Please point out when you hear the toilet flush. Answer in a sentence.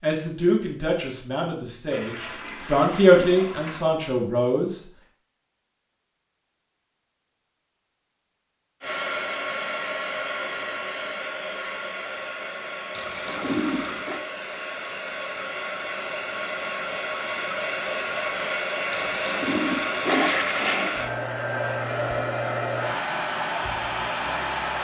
You can hear the toilet flush from 1.9 to 3.9 s, from 12.9 to 14.2 s and from 18.9 to 20.9 s.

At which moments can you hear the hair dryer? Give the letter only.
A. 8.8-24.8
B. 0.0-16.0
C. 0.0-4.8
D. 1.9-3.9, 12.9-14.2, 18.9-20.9
A.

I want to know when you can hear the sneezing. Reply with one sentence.
You can't hear the sneezing here.